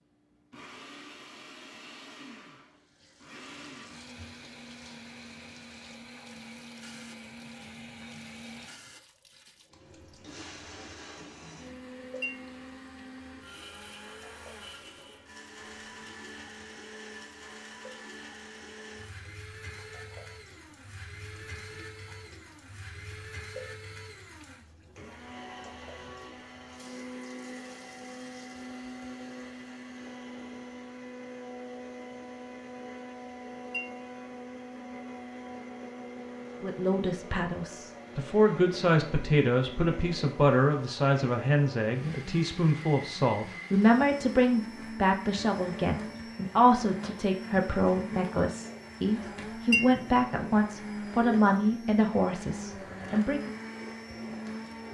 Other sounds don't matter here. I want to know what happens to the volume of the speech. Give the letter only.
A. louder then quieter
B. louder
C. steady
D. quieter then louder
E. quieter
C.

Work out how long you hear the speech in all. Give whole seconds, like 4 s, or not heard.
17 s.